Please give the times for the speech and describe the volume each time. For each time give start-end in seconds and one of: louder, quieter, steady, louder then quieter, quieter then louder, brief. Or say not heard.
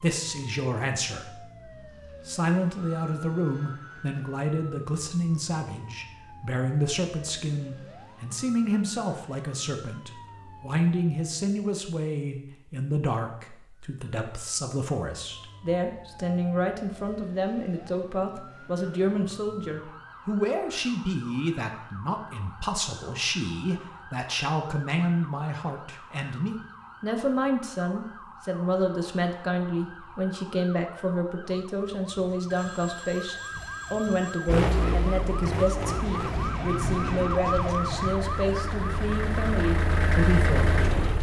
0.0-1.4 brief
2.2-41.1 steady.